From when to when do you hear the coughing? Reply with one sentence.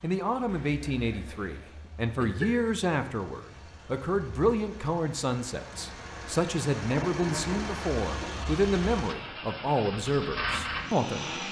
You can hear the coughing from 0.5 to 2.5 s and from 6.8 to 8.3 s.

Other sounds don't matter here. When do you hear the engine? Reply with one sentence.
The engine can be heard from 0.0 to 11.4 s.